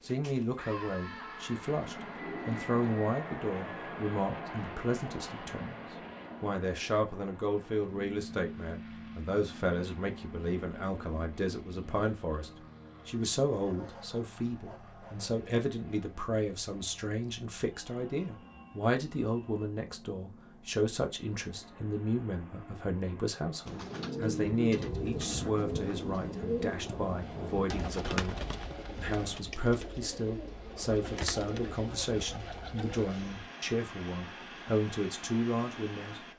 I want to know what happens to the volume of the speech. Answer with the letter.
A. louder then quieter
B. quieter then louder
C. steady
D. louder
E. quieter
C.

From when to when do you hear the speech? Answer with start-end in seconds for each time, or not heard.
0.0-5.8, 6.4-36.2.